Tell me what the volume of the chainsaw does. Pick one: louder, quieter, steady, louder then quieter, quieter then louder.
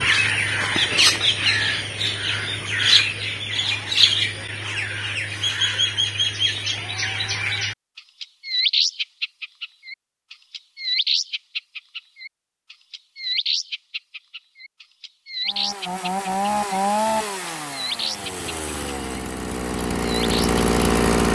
quieter then louder.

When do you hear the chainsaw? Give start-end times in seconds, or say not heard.
15.4-21.3.